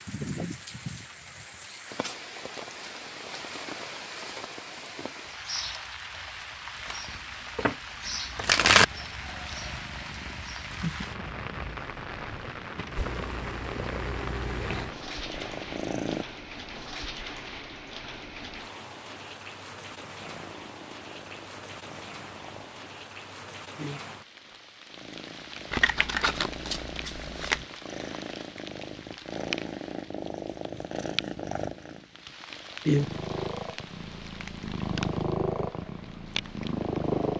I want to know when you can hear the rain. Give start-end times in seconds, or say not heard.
0.0-37.3.